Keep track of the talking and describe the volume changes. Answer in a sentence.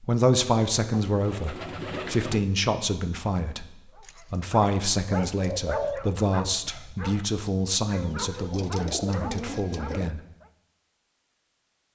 The volume of the talking goes down.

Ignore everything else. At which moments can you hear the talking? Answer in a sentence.
You can hear the talking from 0.0 to 3.6 s and from 4.3 to 10.2 s.